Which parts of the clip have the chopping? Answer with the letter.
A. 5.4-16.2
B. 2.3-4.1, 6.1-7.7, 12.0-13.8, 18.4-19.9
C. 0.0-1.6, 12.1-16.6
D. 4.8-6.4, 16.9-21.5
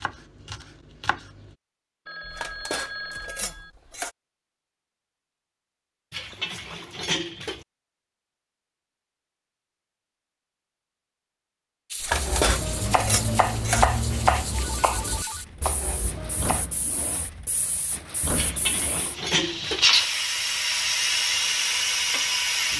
C.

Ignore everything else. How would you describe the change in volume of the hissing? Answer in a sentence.
The loudness of the hissing goes up.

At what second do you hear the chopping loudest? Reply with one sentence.
The volume of the chopping peaks at 14 seconds.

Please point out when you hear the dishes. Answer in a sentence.
You can hear the dishes from 2.3 to 4.1 s, from 6.1 to 7.7 s, from 12.0 to 13.8 s and from 18.4 to 19.9 s.